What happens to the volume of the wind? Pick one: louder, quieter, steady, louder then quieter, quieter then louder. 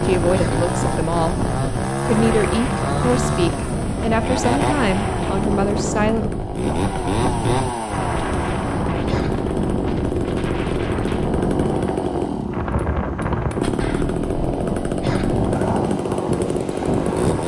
steady.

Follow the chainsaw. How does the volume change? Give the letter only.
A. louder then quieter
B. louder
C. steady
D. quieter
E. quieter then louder
C.